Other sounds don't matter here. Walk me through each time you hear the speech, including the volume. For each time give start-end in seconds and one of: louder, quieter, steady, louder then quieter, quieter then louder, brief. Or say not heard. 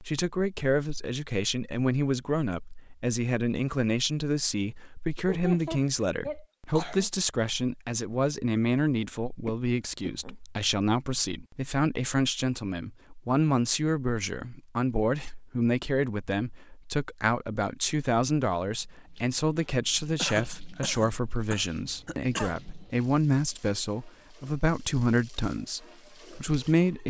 0.0-27.0 steady.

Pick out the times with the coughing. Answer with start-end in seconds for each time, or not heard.
5.2-7.1, 9.4-10.3, 20.1-22.6.